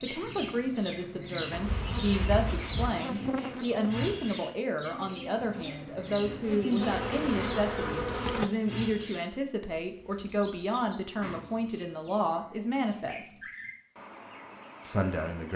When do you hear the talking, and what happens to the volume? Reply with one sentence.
You can hear the talking from 0.0 to 13.3 s, at a steady volume; and briefly from 14.8 to 15.5 s.